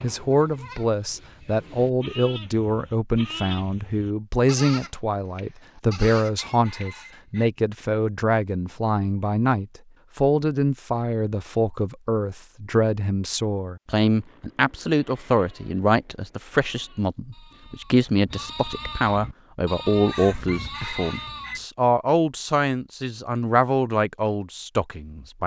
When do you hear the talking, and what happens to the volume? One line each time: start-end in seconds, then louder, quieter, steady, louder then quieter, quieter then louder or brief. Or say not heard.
0.0-25.4 steady.